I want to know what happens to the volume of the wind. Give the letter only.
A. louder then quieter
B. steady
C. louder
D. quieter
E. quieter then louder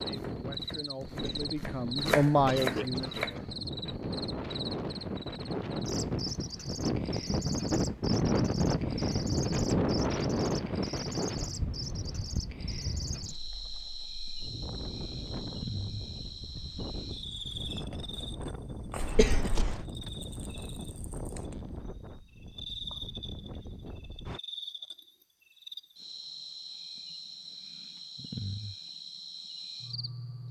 A.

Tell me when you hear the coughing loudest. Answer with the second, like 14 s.
19 s.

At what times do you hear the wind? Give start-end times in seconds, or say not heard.
0.0-24.4.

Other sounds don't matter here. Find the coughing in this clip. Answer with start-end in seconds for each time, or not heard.
1.1-3.5, 19.0-19.9.